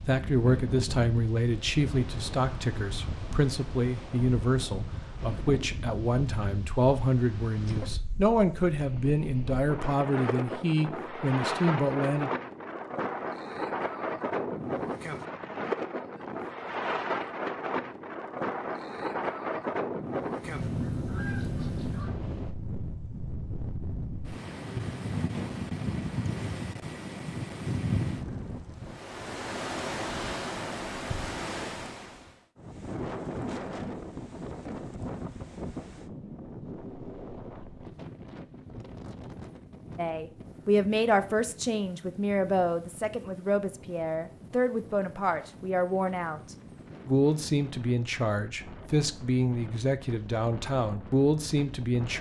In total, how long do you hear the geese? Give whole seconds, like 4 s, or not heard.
2 s.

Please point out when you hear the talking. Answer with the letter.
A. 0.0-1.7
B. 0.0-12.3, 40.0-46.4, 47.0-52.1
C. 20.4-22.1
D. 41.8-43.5
B.